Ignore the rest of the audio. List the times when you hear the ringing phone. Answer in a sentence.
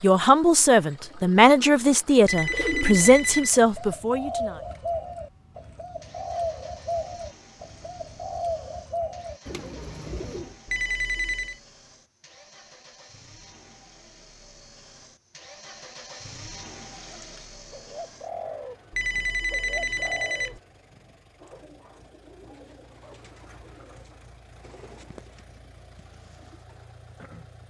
You can hear the ringing phone from 2.2 to 3.5 s, from 10.7 to 11.6 s and from 18.9 to 20.6 s.